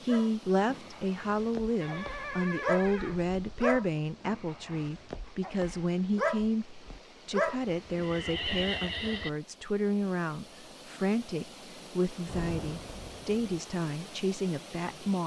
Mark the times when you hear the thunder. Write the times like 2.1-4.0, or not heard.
12.2-13.4.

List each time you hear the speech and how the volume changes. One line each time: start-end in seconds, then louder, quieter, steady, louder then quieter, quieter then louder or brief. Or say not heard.
0.0-15.2 steady.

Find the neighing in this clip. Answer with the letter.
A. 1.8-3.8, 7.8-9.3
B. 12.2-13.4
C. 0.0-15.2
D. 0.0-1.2
A.